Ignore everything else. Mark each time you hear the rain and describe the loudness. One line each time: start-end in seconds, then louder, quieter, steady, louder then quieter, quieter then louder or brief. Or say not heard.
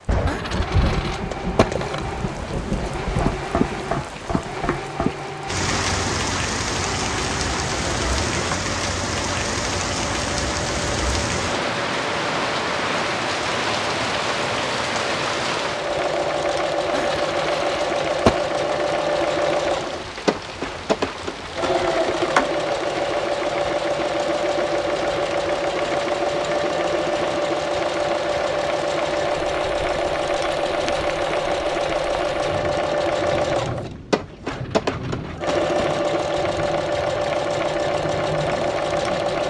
0.0-39.4 quieter.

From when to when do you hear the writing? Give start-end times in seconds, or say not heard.
not heard.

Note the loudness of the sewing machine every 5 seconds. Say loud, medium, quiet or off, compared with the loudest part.
medium, medium, medium, loud, loud, loud, loud, loud.